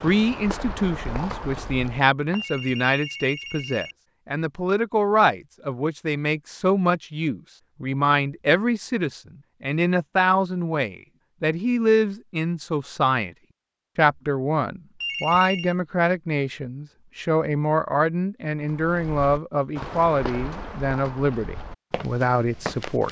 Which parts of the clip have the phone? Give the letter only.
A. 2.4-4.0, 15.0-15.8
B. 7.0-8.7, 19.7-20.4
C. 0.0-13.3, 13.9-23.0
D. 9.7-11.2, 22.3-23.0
A.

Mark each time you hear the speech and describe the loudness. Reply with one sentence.
The speech can be heard from 0.0 to 13.3 s, at a steady volume; and from 13.9 to 23.0 s, at a steady volume.